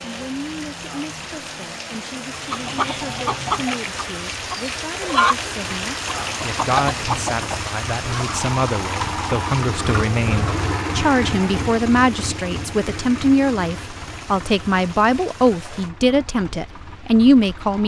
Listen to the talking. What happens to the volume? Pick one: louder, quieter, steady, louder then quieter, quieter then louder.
louder.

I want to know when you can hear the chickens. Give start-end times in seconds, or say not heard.
2.3-8.4.